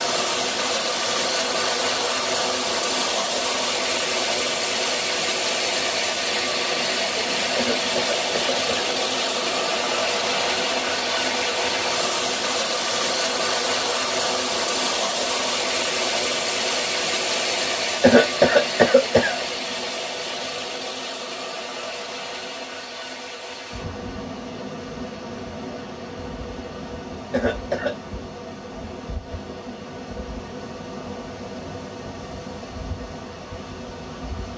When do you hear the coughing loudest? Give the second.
18 s.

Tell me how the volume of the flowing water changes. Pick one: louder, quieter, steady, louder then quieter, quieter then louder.
quieter.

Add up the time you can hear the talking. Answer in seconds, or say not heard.
not heard.